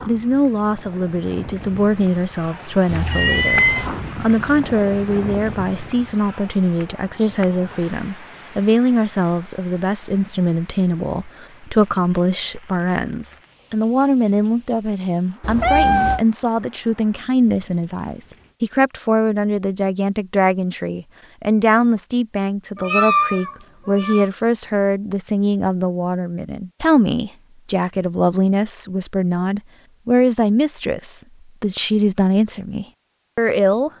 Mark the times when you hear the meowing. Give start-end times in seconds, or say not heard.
2.9-3.9, 15.4-16.2, 22.8-24.3.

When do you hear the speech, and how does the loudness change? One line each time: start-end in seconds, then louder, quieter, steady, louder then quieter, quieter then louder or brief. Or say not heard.
0.1-33.9 steady.